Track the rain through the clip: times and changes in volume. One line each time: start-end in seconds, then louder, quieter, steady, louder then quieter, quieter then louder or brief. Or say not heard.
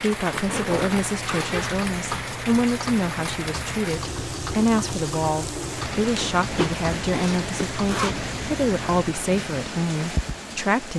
0.0-10.9 steady.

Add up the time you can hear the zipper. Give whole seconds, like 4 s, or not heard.
4 s.